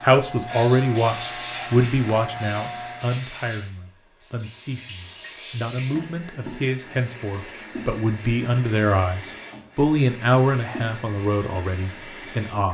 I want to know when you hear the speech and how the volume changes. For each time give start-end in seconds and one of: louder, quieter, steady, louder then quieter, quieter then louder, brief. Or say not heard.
0.0-12.6 quieter then louder.